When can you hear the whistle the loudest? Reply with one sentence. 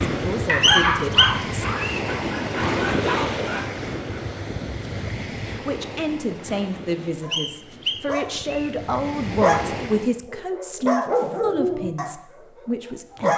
The volume of the whistle peaks at 1 second.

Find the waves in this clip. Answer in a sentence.
The waves can be heard from 0.0 to 10.2 s.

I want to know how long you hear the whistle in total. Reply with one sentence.
You can hear the whistle for 3 seconds altogether.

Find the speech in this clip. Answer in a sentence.
You can hear the speech from 0.1 to 1.6 s and from 5.5 to 13.3 s.